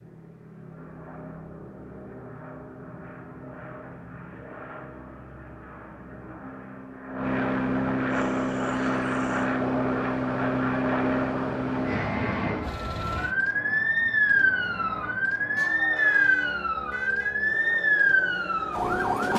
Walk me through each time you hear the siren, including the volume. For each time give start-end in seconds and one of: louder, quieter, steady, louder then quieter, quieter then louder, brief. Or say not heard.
8.1-19.3 louder.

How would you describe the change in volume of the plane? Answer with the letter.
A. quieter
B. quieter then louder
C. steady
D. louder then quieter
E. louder
D.